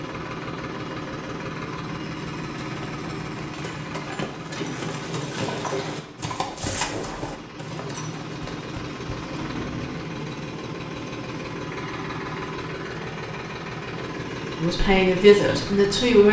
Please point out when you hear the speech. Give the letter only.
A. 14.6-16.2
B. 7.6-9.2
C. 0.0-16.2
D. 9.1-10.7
A.